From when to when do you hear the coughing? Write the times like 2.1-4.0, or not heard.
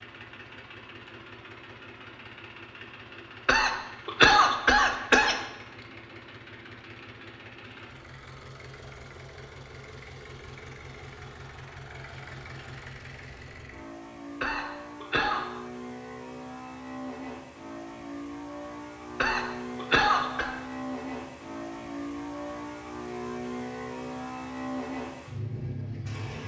3.5-5.4, 14.4-15.4, 19.2-20.5.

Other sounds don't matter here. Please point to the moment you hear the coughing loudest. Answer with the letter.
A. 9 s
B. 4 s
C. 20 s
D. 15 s
B.